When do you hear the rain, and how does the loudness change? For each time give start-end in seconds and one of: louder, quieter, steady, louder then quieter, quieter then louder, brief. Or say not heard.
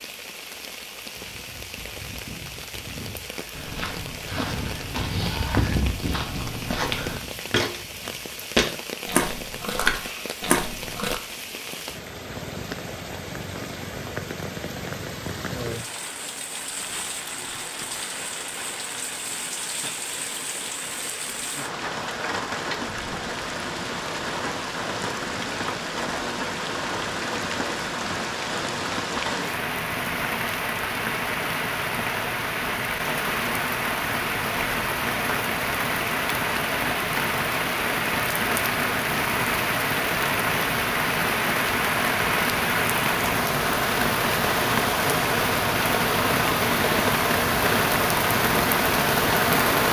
0.0-49.8 louder.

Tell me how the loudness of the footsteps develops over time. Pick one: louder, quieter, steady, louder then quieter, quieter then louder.
louder.